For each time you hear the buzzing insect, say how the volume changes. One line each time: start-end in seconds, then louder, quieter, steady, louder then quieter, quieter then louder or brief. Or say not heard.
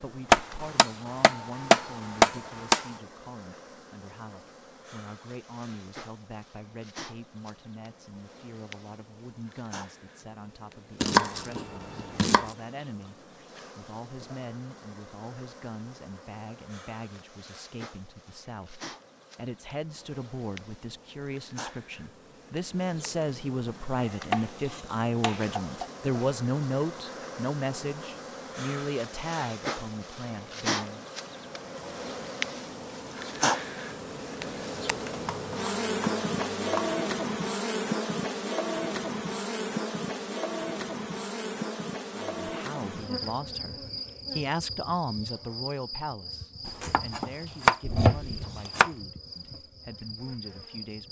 0.0-51.0 louder then quieter.